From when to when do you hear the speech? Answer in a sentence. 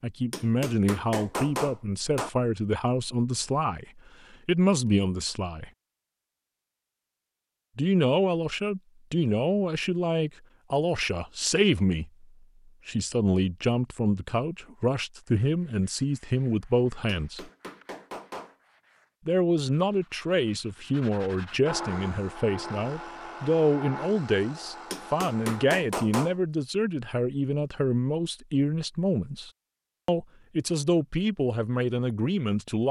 The speech can be heard from 0.0 to 5.7 s, from 7.8 to 12.2 s, from 12.8 to 17.5 s and from 19.2 to 32.8 s.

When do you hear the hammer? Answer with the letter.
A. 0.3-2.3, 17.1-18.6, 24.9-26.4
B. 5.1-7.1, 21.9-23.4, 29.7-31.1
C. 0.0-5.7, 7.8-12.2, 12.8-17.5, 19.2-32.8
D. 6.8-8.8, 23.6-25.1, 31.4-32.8
A.